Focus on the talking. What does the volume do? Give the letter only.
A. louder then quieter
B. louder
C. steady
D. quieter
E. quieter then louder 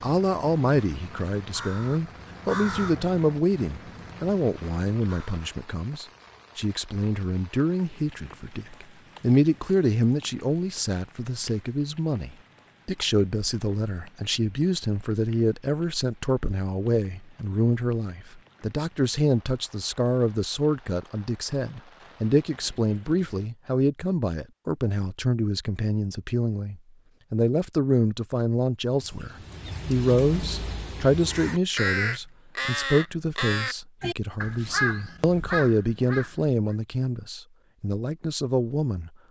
C.